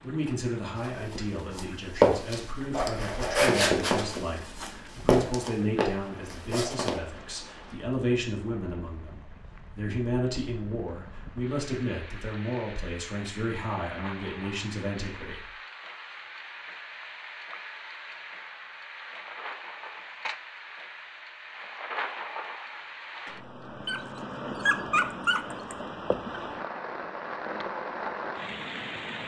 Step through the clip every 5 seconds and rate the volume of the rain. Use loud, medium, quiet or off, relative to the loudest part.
quiet, quiet, medium, medium, loud, loud.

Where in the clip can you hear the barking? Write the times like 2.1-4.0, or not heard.
23.9-25.8.